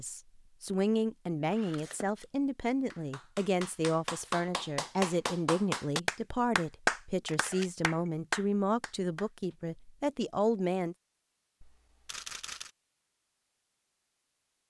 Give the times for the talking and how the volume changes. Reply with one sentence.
You can hear the talking from 0.0 to 10.9 s, at a steady volume.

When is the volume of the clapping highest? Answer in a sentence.
The volume of the clapping peaks at 7 seconds.